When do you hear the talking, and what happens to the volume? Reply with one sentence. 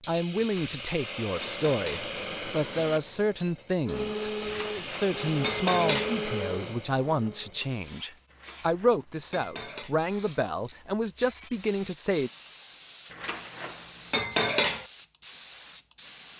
You can hear the talking from 0.1 to 12.3 s, at a steady volume.